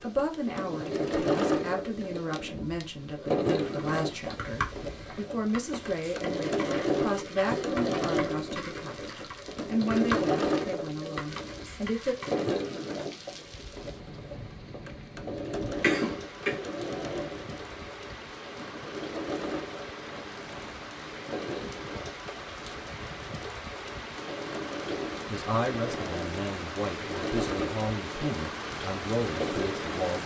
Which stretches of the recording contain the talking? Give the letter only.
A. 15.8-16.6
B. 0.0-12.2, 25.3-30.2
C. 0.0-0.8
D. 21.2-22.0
B.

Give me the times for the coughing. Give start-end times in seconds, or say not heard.
15.8-16.6.